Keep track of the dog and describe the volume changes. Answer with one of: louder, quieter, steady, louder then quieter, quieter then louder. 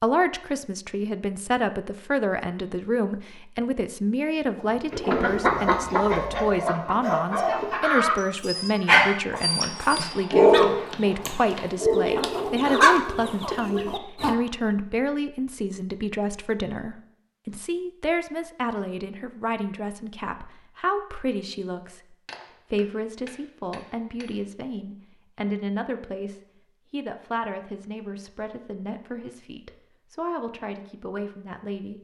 louder then quieter.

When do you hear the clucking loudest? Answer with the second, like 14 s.
13 s.